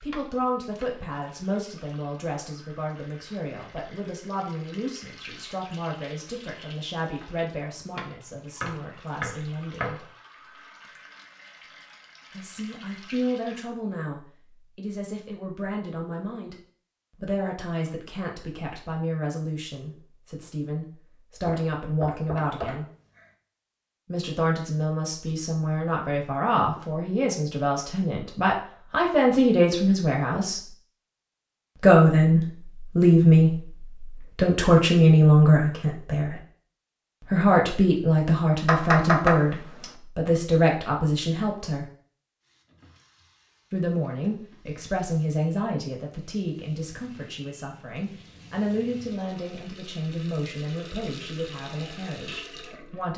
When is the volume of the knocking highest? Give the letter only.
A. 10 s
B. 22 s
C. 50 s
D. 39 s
D.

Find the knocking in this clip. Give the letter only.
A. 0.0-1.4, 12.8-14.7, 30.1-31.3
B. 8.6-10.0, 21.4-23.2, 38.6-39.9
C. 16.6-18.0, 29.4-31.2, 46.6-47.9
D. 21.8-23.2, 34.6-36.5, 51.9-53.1
B.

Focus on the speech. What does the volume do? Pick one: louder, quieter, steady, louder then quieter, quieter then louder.
louder then quieter.